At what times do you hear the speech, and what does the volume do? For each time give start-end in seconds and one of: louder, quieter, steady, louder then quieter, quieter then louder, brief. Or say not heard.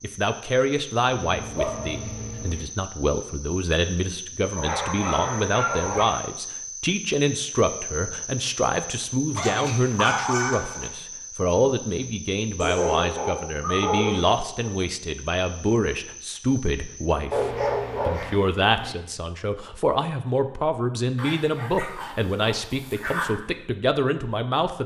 0.0-24.8 steady.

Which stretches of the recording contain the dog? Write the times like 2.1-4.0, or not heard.
1.1-2.6, 4.5-6.0, 9.3-10.9, 12.6-14.7, 17.3-18.9, 21.1-23.3.